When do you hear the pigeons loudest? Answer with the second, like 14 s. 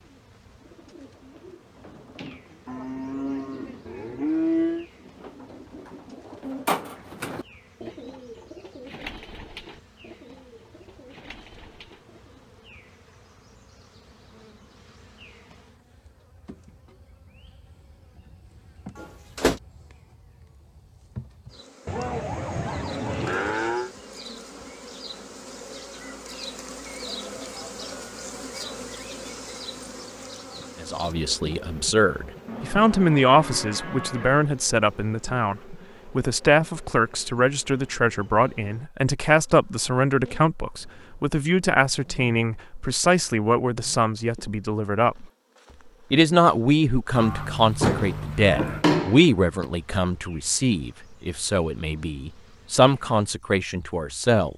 7 s.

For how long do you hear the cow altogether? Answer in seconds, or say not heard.
8 s.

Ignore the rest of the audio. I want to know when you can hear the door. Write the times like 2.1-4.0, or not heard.
18.9-19.6, 47.8-49.7.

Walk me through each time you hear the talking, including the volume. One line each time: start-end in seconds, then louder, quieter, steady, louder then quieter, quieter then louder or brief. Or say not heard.
30.8-45.2 steady
46.1-54.5 quieter then louder.